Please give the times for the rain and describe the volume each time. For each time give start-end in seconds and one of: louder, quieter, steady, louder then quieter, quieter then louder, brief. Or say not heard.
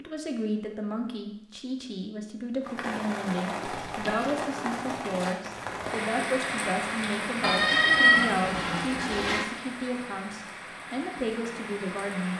2.6-12.3 quieter.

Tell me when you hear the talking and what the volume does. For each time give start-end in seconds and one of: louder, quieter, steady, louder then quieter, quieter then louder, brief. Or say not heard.
0.0-12.3 steady.